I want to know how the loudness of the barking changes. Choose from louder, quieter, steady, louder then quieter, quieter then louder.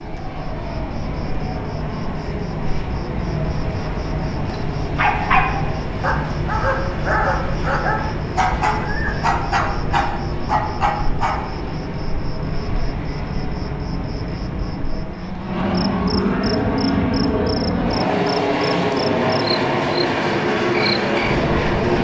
steady.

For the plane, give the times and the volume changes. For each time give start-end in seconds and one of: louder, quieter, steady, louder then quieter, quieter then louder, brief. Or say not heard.
0.0-21.9 louder.